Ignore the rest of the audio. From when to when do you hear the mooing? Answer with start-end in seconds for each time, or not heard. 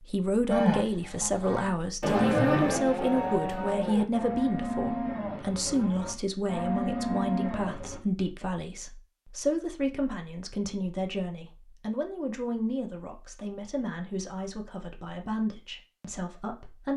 0.5-8.0.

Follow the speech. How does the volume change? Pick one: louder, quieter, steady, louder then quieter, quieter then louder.
quieter.